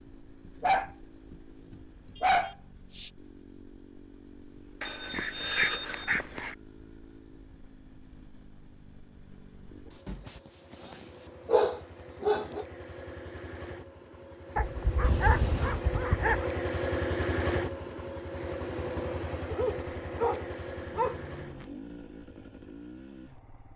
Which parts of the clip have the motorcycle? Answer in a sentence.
The motorcycle can be heard from 0.0 to 23.7 s.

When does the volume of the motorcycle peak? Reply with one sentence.
The volume of the motorcycle peaks at 17 seconds.